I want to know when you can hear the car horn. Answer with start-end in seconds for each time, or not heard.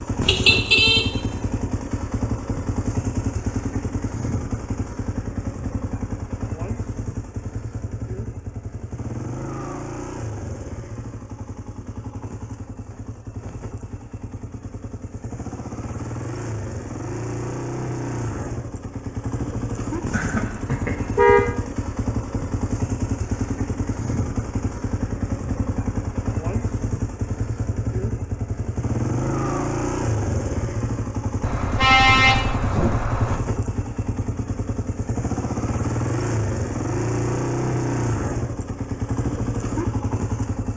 0.2-1.1, 20.1-21.6, 31.4-33.4.